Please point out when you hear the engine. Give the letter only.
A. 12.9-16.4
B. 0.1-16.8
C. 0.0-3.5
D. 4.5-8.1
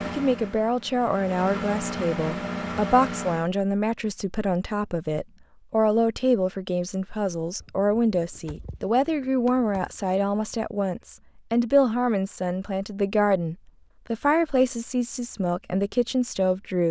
C.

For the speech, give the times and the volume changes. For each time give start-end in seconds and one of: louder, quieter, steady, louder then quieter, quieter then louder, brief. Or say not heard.
0.1-16.8 steady.